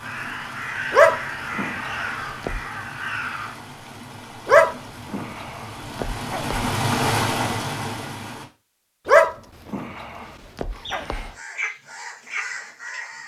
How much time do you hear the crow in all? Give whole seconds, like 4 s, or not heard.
6 s.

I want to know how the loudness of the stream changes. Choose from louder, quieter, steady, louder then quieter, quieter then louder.
louder.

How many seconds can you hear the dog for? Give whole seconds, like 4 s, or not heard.
6 s.